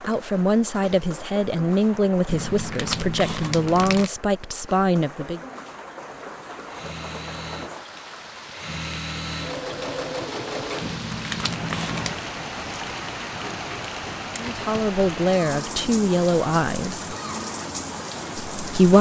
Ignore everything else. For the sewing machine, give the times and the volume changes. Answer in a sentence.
You can hear the sewing machine from 6.5 to 11.0 s, getting quieter then louder.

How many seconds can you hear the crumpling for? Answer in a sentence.
The crumpling can be heard for 3 seconds in total.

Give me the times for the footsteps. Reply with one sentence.
You can't hear the footsteps here.